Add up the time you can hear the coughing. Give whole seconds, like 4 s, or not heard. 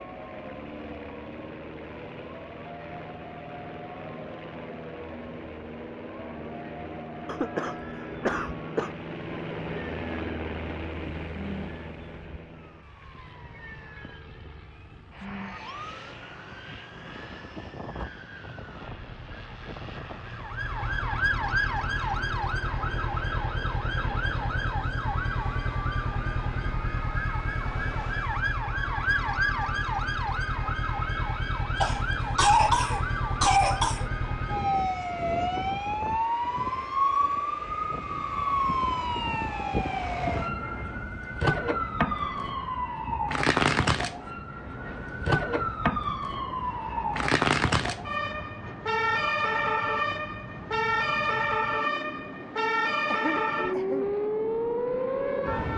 5 s.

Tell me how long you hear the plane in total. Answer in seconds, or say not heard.
56 s.